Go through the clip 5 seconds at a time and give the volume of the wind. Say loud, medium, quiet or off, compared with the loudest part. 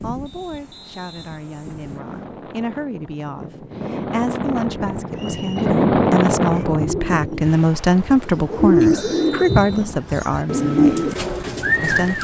medium, loud, quiet.